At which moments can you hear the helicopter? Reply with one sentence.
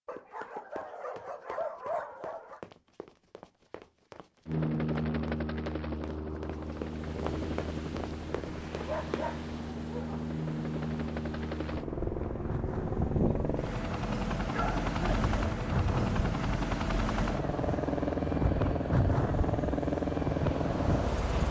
You can hear the helicopter from 4.5 to 21.4 s.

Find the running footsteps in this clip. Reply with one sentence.
The running footsteps can be heard from 0.1 to 9.3 s.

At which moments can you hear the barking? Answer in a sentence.
The barking can be heard from 0.1 to 2.6 s, from 8.8 to 10.3 s and from 14.4 to 15.2 s.